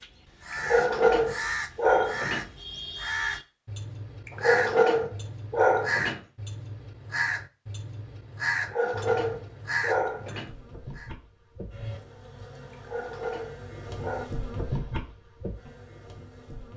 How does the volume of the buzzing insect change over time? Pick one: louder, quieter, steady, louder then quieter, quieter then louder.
louder then quieter.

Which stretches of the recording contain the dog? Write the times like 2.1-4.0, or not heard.
0.5-2.5, 4.2-6.2, 8.6-10.5, 12.7-14.3.